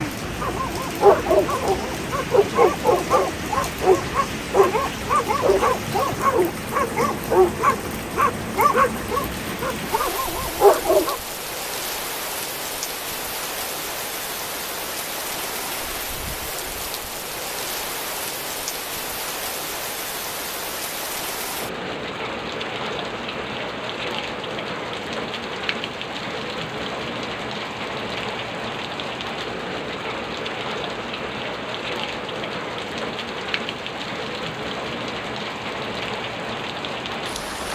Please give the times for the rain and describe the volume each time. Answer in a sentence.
The rain can be heard from 0.0 to 37.6 s, at a steady volume.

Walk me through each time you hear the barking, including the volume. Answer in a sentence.
You can hear the barking from 0.4 to 11.2 s, at a steady volume.